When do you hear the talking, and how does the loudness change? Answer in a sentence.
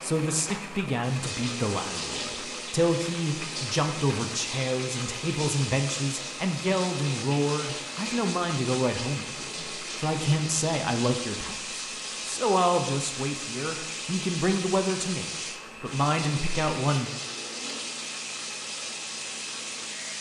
The talking can be heard from 0.0 to 17.1 s, at a steady volume.